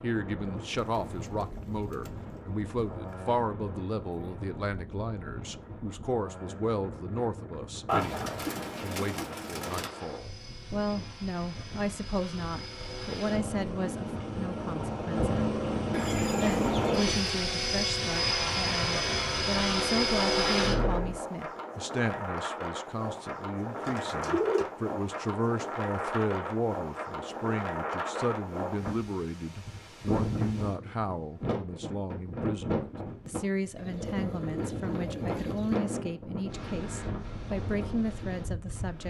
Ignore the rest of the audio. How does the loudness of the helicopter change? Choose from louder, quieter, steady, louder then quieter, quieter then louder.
louder.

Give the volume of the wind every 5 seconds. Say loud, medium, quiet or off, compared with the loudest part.
medium, medium, medium, medium, loud, loud, loud, loud.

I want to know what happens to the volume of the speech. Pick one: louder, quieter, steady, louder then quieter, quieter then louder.
steady.